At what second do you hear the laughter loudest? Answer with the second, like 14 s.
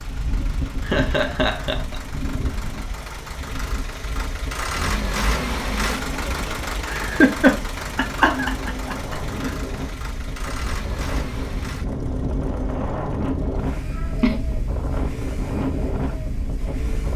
7 s.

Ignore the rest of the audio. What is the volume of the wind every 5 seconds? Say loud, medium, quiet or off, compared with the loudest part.
medium, medium, loud, loud.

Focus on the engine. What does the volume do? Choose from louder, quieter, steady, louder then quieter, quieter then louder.
louder then quieter.